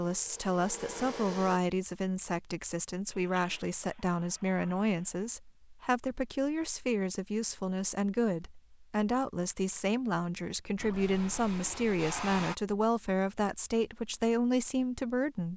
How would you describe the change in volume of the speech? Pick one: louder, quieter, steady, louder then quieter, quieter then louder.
steady.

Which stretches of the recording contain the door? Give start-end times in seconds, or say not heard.
not heard.